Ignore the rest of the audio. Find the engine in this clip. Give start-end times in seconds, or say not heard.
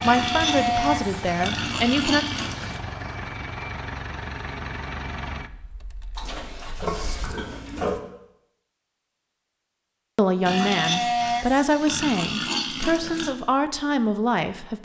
0.0-8.0.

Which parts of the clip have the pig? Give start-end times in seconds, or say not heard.
0.0-2.8, 6.2-8.0, 10.4-13.3.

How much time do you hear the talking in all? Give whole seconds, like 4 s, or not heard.
7 s.